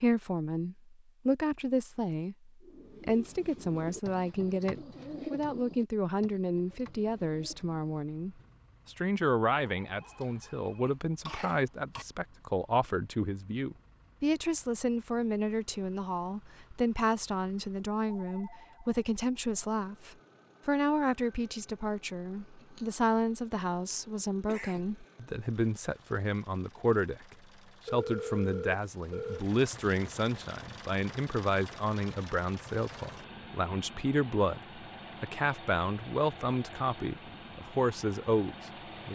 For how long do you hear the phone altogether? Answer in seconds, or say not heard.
4 s.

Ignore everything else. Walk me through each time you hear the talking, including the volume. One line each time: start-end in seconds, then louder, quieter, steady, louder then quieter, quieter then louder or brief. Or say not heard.
0.0-39.1 steady.